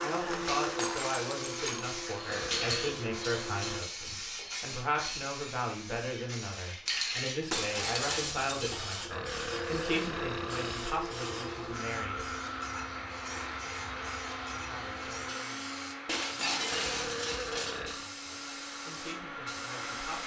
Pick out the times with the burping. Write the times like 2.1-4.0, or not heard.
2.2-3.0, 9.1-10.9, 16.7-18.1.